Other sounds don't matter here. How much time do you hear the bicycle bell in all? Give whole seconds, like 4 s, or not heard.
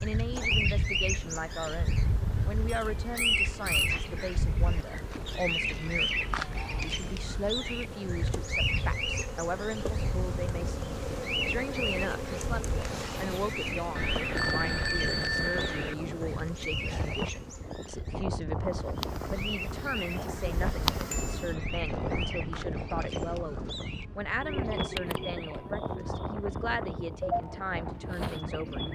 4 s.